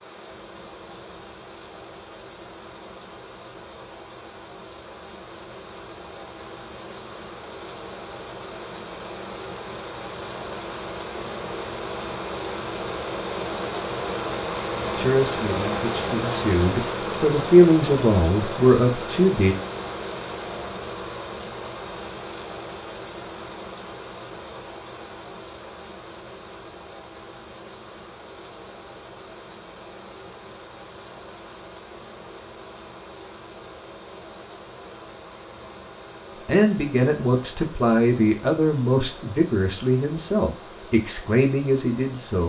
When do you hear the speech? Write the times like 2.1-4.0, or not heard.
14.9-19.6, 36.5-42.4.